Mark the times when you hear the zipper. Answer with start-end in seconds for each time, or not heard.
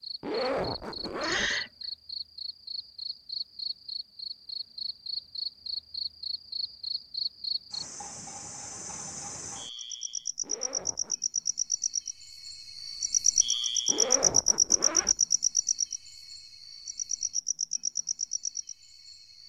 0.2-1.5, 10.4-11.2, 13.8-15.2.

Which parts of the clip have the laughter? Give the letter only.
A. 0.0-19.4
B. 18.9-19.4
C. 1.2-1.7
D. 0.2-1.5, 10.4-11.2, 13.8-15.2
C.